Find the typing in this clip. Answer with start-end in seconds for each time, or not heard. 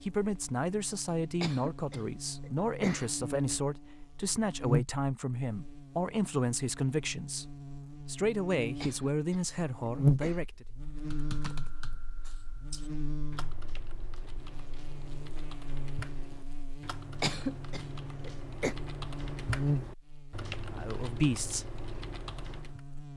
11.1-22.8.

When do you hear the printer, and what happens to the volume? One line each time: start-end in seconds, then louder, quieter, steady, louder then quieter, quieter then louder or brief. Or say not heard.
not heard.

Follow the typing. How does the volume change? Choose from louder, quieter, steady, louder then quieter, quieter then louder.
louder.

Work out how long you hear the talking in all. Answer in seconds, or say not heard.
11 s.